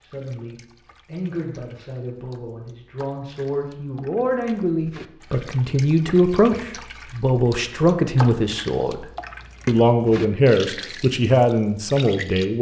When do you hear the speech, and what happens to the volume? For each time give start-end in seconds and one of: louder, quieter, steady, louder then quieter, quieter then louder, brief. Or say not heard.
0.0-9.1 louder
9.7-12.5 brief.